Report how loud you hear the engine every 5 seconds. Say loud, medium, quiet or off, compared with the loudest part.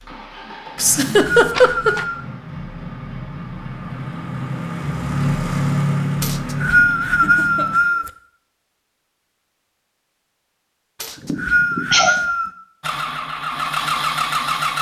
medium, loud, loud.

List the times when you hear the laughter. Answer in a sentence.
You can hear the laughter from 0.8 to 2.0 s, from 7.0 to 8.0 s and from 11.2 to 12.2 s.